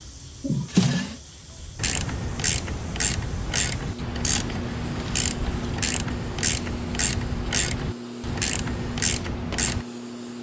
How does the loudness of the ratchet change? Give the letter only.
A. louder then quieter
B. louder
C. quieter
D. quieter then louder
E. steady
E.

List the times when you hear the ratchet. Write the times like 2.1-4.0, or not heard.
1.8-9.8.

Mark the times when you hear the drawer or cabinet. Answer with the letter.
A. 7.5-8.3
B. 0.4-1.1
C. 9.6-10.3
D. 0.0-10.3
B.